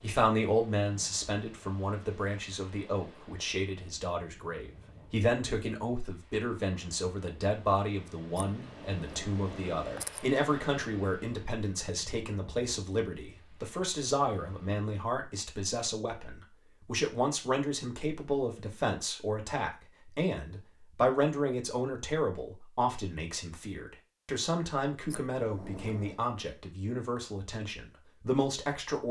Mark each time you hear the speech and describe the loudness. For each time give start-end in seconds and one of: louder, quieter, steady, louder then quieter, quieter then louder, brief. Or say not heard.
0.0-29.0 steady.